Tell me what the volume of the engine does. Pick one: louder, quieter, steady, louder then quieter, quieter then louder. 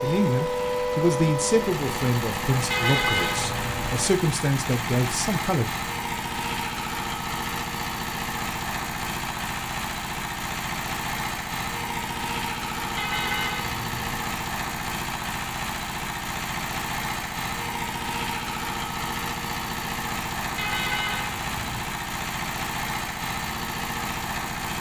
steady.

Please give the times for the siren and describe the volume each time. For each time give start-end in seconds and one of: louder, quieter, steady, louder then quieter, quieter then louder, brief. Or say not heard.
0.0-4.1 quieter.